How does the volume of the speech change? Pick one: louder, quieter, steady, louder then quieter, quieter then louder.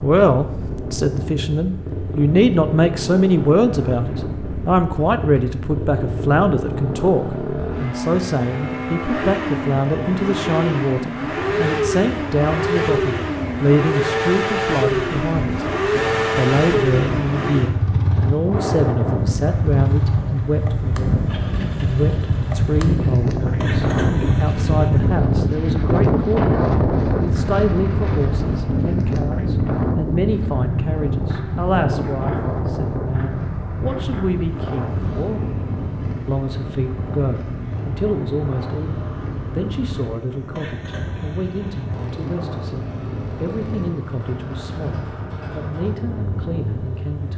quieter.